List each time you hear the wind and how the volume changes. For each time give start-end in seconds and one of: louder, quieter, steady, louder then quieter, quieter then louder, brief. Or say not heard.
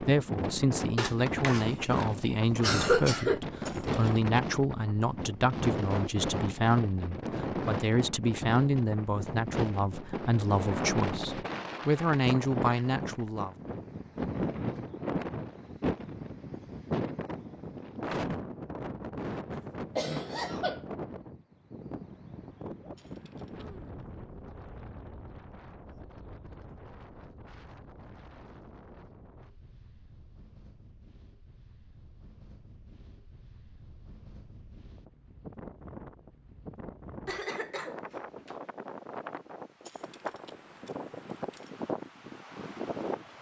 0.0-43.3 quieter then louder.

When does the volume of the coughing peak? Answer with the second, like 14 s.
3 s.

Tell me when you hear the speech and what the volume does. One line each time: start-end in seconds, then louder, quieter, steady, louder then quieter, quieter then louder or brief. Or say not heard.
0.0-13.6 steady.